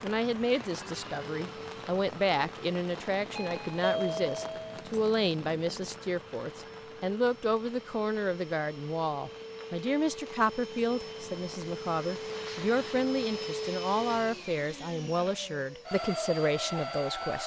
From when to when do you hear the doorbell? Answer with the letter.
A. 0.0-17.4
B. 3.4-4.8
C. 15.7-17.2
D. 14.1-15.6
B.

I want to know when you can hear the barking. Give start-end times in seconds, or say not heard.
not heard.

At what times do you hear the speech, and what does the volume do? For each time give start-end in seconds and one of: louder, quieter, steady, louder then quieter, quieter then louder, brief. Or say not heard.
0.0-17.4 steady.